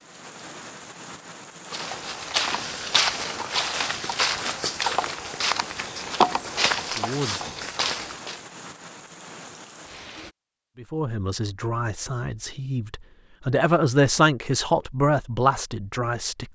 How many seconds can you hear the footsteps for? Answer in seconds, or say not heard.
7 s.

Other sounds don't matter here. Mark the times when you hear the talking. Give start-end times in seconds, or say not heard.
7.0-7.6, 10.8-16.5.